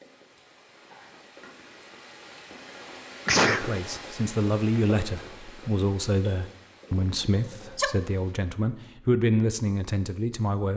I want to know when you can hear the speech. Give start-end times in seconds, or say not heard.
3.5-10.7.